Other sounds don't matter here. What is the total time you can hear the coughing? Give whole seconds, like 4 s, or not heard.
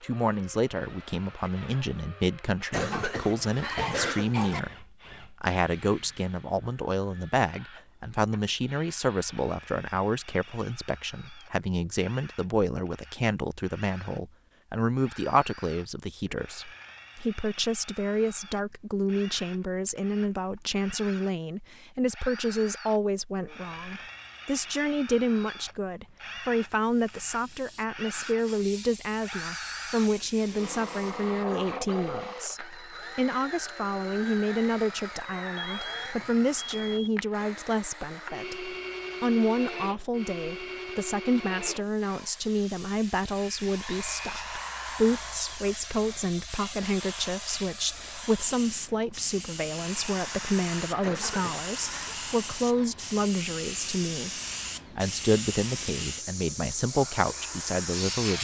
3 s.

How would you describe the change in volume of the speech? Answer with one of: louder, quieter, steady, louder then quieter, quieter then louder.
steady.